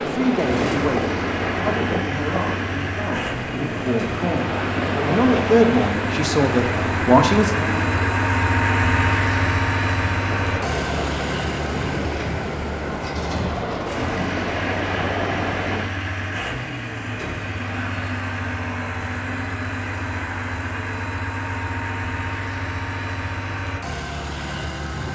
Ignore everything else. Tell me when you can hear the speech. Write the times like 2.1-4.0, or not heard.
0.0-7.5.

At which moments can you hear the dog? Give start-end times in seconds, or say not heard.
not heard.